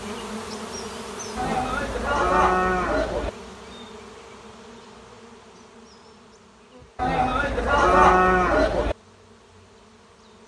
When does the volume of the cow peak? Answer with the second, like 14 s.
8 s.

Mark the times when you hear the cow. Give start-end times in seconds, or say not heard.
1.4-3.3, 7.0-8.9.